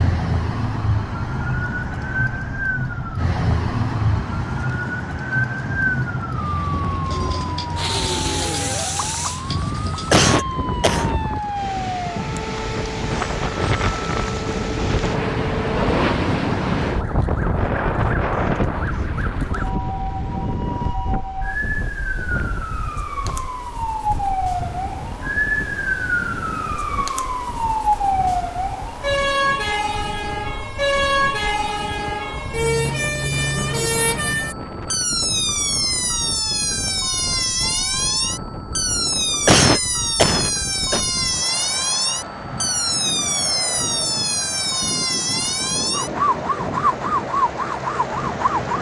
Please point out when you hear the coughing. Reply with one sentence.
You can hear the coughing from 10.1 to 11.2 s and from 39.5 to 41.0 s.